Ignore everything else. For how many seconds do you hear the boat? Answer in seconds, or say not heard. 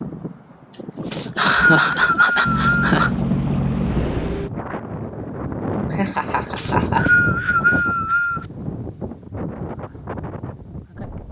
2 s.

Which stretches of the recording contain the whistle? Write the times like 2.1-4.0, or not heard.
1.1-3.0, 6.5-8.4.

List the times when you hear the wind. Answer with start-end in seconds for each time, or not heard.
0.0-11.2.